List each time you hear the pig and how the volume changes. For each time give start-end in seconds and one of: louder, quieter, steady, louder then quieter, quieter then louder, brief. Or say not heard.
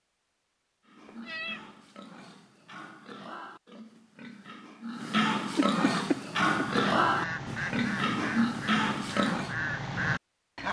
0.8-9.6 louder.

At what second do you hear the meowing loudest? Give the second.
6 s.